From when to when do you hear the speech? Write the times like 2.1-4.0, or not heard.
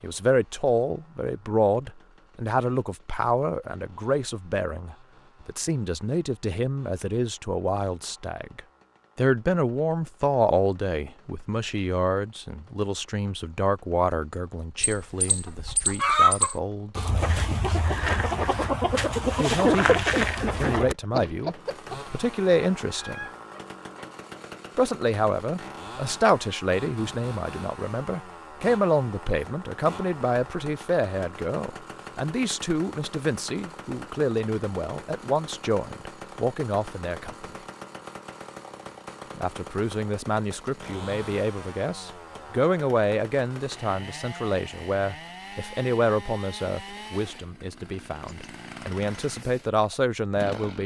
0.0-17.8, 19.4-23.2, 24.8-37.5, 39.4-50.8.